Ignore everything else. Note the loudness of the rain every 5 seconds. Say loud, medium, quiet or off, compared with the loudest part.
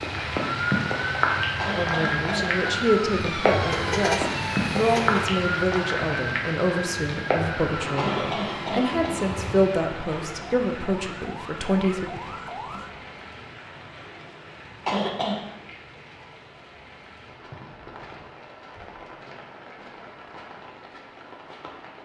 loud, loud, quiet, quiet, quiet.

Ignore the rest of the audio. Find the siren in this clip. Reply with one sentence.
The siren can be heard from 0.0 to 12.9 s.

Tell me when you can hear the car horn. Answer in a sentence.
The car horn can be heard from 3.7 to 5.2 s.